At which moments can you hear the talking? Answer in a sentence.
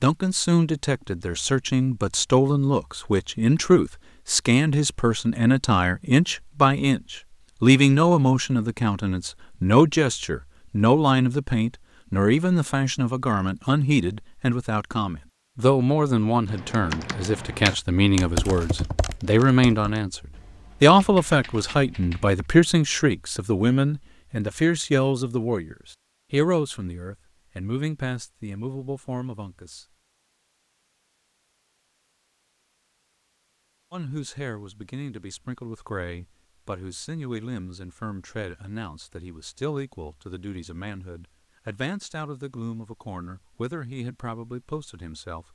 You can hear the talking from 0.0 to 29.9 s and from 33.9 to 45.5 s.